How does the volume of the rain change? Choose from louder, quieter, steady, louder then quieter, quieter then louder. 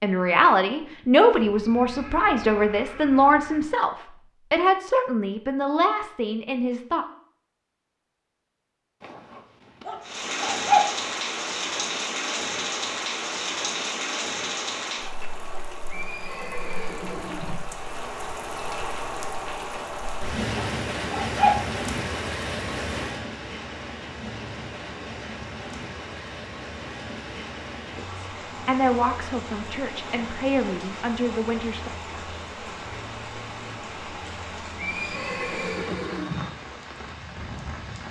quieter.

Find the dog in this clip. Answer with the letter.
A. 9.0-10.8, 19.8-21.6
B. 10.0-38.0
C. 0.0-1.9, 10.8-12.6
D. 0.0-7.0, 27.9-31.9
A.